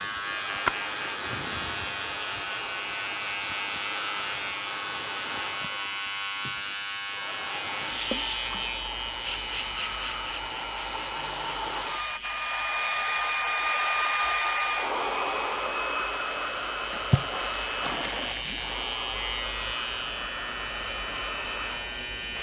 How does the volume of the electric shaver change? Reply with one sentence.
The volume of the electric shaver goes down, then up.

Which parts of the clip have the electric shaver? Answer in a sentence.
The electric shaver can be heard from 0.0 to 22.3 s.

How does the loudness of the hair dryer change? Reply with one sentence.
The loudness of the hair dryer goes up, then down.